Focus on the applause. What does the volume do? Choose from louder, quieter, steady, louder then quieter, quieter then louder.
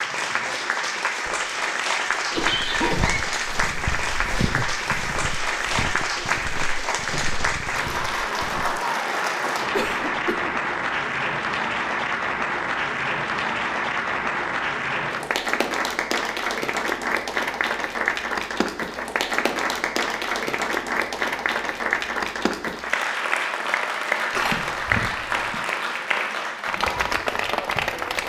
steady.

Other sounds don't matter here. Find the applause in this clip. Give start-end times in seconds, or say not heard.
0.0-28.2.